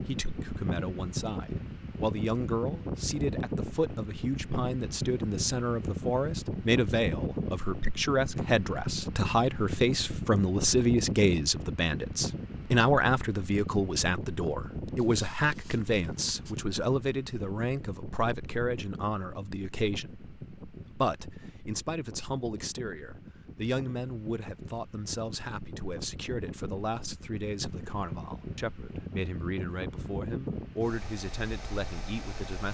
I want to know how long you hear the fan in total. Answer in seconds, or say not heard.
33 s.